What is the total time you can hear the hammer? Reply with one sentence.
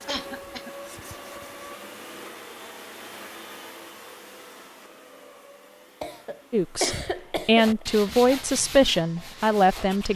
You can't hear the hammer here.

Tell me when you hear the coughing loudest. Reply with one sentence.
The volume of the coughing peaks at 7 seconds.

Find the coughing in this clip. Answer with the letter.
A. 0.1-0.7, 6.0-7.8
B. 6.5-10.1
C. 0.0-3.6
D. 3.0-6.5
A.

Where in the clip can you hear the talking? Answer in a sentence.
You can hear the talking from 6.5 to 10.1 s.